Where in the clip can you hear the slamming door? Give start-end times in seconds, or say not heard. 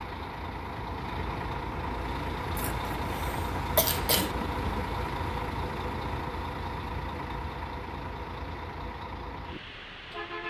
not heard.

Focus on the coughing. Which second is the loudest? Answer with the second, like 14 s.
4 s.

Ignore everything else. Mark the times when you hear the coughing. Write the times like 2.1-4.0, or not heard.
2.5-4.3.